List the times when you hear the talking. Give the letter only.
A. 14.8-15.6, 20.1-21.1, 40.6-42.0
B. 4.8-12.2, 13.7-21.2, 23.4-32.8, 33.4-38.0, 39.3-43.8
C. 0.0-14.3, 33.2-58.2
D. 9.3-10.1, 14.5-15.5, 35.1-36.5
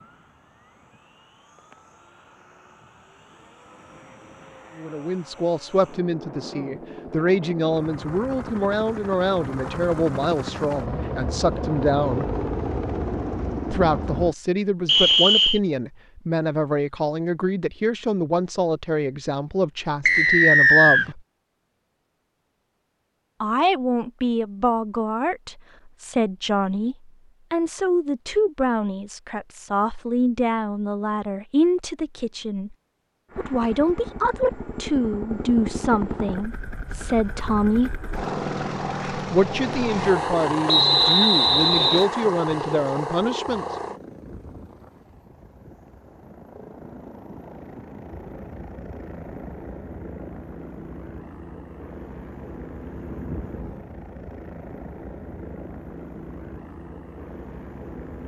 B.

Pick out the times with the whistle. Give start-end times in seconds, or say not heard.
14.8-15.6, 20.1-21.1, 40.6-42.0.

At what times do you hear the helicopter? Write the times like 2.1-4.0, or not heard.
0.0-14.3, 33.2-58.2.